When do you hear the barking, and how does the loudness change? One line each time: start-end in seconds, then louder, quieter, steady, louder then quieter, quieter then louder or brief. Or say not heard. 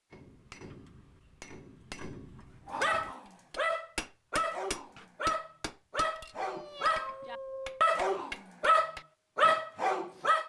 2.6-10.4 louder.